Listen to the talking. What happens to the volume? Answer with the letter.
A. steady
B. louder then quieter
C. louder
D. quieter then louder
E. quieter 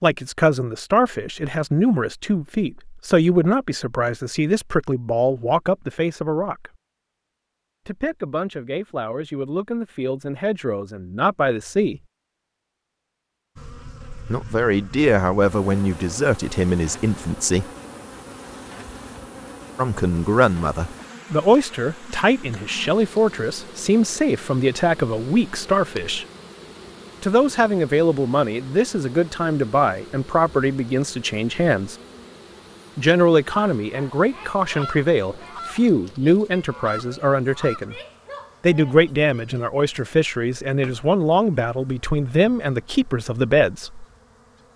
A.